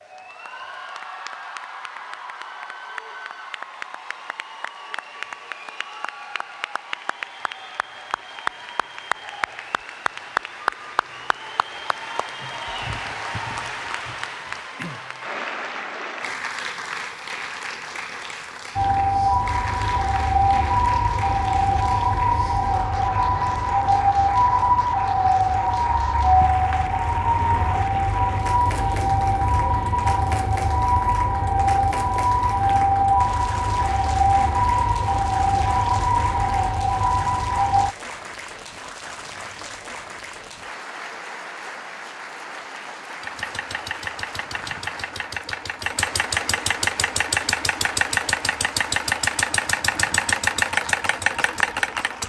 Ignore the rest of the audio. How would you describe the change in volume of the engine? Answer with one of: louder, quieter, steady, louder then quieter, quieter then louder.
louder.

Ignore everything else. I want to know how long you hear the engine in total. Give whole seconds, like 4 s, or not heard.
9 s.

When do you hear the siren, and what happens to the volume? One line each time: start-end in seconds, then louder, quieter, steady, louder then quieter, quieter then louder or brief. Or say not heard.
18.8-38.0 steady.